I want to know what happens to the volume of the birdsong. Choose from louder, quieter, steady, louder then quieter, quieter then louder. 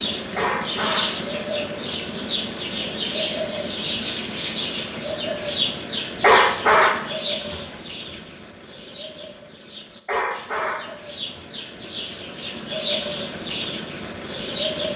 quieter then louder.